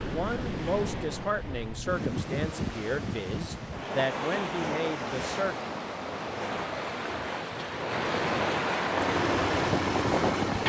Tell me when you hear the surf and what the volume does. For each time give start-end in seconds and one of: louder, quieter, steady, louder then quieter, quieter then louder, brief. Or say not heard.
0.0-10.6 louder.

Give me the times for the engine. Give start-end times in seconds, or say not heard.
9.0-10.6.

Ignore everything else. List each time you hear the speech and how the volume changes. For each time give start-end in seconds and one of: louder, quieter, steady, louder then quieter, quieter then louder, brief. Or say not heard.
0.0-5.5 steady.